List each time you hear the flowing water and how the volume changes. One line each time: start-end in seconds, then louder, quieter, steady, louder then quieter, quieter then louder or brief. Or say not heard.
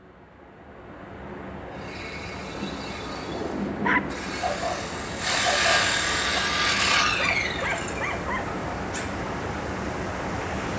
0.0-10.7 louder.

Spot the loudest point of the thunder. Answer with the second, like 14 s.
4 s.